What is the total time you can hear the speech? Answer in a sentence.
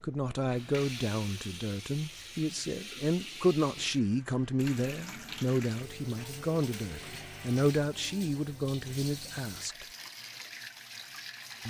The speech can be heard for 10 seconds in total.